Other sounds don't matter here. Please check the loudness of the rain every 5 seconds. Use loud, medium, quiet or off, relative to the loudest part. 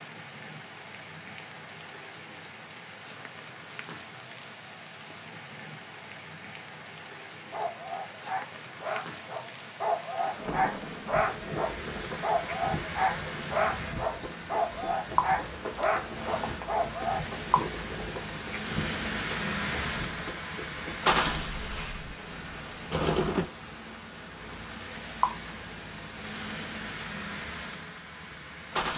medium, medium, medium, loud, loud, loud.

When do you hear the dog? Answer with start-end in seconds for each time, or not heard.
7.5-17.2.